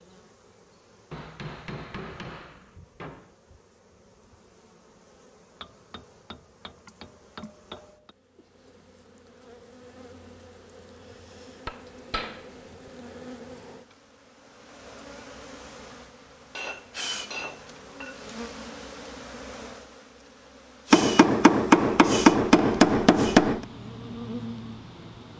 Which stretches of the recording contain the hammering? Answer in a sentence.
You can hear the hammering from 1.1 to 3.3 s, from 5.6 to 8.1 s, from 11.7 to 12.9 s, from 16.5 to 18.2 s and from 20.9 to 23.6 s.